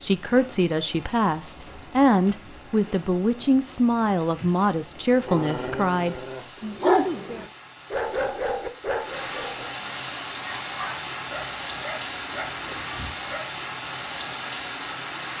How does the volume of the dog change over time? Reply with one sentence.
The loudness of the dog goes up, then down.